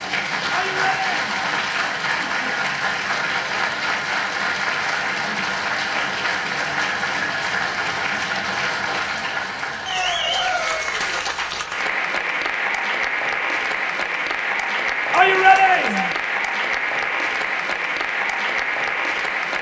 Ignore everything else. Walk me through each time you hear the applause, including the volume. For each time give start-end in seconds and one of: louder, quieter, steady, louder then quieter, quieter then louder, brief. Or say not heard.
0.0-19.5 steady.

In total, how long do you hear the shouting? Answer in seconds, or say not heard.
2 s.